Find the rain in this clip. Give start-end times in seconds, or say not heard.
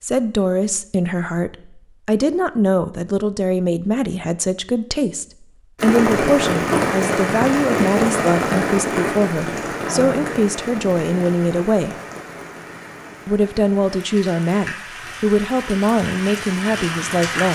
5.8-17.4.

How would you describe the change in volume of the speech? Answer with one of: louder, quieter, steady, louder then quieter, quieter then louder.
steady.